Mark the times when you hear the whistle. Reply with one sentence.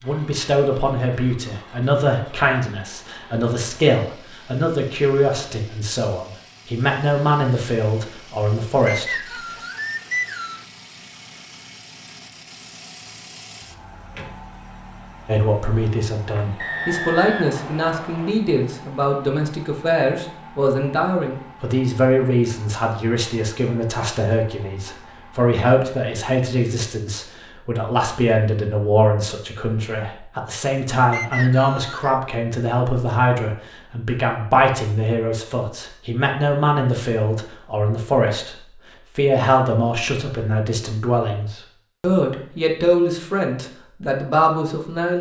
The whistle can be heard from 8.8 to 10.7 s, from 16.6 to 18.4 s and from 31.1 to 32.2 s.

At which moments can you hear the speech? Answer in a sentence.
You can hear the speech from 0.0 to 9.2 s, from 15.2 to 38.5 s and from 39.1 to 45.1 s.